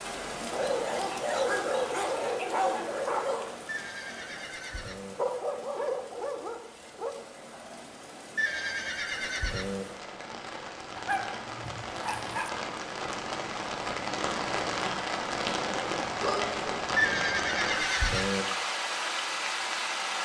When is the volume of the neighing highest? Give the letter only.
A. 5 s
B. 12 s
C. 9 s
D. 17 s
D.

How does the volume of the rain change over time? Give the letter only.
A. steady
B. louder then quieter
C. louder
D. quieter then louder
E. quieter
D.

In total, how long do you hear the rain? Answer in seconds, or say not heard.
20 s.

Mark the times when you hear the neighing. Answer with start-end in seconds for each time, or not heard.
3.6-5.2, 8.3-9.8, 16.9-18.4.